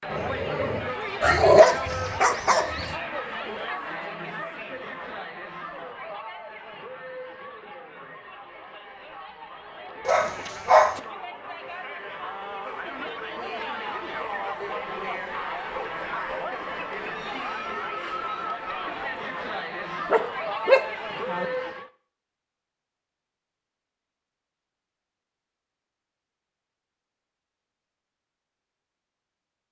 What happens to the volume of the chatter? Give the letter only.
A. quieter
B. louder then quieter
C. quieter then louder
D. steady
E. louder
C.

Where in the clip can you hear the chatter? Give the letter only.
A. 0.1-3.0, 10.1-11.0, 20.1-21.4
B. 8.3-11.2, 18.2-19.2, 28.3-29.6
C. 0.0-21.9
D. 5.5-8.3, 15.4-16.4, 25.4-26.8
C.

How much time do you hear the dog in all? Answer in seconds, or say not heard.
5 s.